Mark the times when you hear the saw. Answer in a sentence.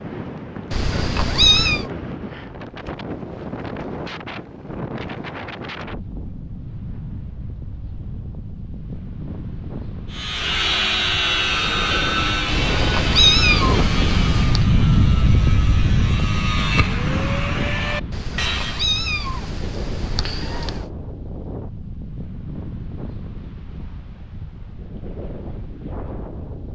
You can hear the saw from 10.1 to 18.9 s.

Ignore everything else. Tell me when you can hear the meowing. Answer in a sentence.
You can hear the meowing from 0.7 to 1.9 s, from 12.4 to 14.7 s and from 18.1 to 20.9 s.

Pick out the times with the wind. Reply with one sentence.
The wind can be heard from 0.0 to 26.7 s.